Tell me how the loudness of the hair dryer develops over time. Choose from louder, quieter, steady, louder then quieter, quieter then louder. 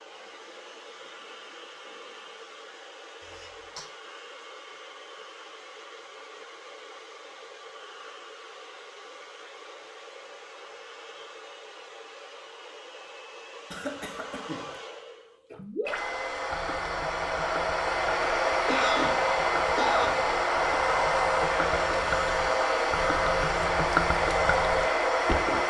louder.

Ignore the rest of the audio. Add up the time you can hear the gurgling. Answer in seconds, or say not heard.
10 s.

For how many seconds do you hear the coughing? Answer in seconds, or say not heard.
3 s.